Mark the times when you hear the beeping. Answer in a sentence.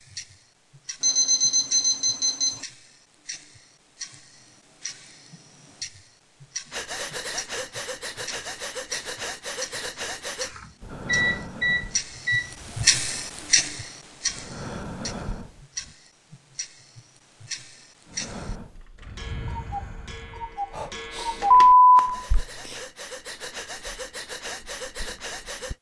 The beeping can be heard from 1.0 to 2.6 s, from 10.4 to 12.8 s and from 21.5 to 22.8 s.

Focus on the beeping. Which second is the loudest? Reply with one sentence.
The volume of the beeping peaks at 22 seconds.